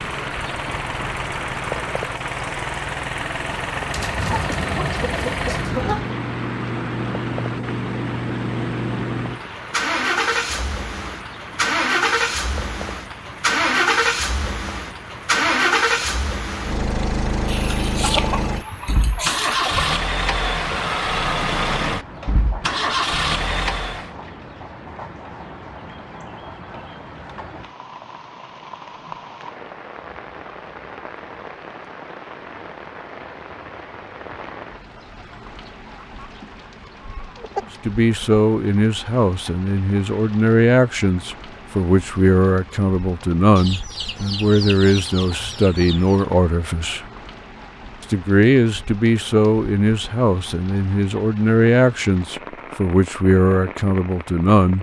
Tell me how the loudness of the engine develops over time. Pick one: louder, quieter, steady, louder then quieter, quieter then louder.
louder.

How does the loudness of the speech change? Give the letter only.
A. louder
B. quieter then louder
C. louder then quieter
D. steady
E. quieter
D.